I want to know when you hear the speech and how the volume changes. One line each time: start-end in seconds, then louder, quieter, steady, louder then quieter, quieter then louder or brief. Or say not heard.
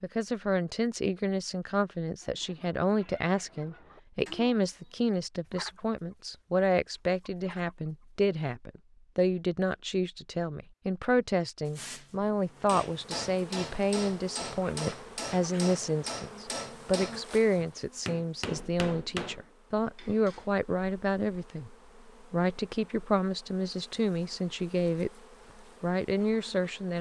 0.0-25.1 steady
25.8-26.9 brief.